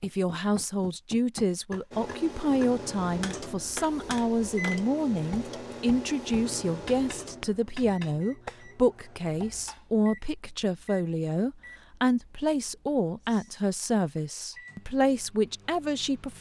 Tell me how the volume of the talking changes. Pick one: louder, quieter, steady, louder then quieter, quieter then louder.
steady.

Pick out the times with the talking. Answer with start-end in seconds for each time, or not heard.
0.0-16.3.